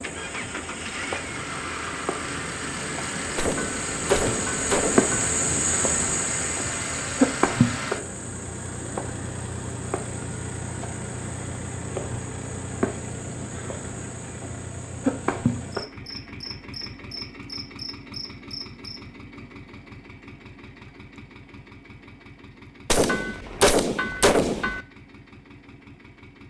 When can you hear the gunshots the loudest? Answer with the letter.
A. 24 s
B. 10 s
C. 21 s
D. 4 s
A.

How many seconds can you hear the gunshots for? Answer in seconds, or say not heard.
4 s.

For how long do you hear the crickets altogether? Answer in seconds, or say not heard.
19 s.